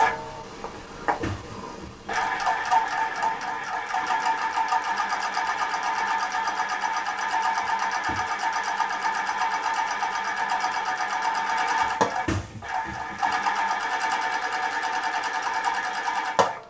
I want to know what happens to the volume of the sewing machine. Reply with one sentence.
The volume of the sewing machine stays about the same.